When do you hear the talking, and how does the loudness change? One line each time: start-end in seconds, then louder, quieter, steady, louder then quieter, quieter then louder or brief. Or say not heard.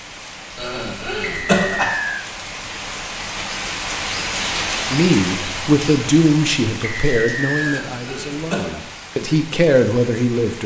4.9-10.6 quieter then louder.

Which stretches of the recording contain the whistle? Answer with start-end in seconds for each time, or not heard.
1.2-2.2, 6.8-7.8.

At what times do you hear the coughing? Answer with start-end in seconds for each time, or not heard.
0.6-1.9, 7.5-8.8.